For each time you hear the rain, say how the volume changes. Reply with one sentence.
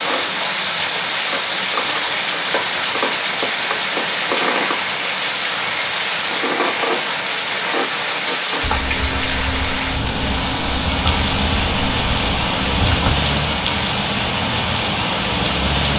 You can hear the rain from 0.0 to 15.9 s, at a steady volume.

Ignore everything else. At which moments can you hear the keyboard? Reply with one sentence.
You can hear the keyboard from 8.6 to 13.2 s.